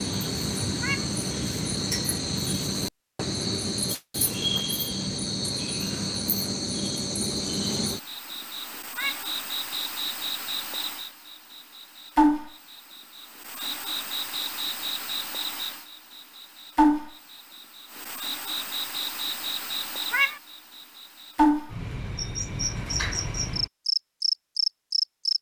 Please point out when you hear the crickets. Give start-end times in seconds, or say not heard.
0.0-25.3.